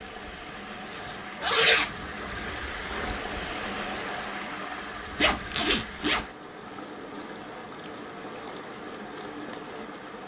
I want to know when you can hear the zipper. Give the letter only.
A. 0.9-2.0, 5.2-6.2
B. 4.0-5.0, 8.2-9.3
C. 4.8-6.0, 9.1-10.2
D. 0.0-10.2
A.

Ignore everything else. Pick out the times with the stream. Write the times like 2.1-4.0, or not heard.
0.0-10.2.